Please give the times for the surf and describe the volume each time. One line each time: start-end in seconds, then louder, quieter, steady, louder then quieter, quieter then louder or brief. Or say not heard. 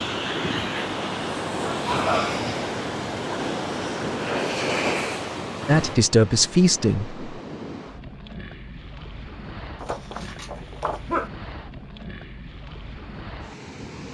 0.0-14.1 quieter.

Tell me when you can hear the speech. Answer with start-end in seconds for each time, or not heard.
5.7-7.2.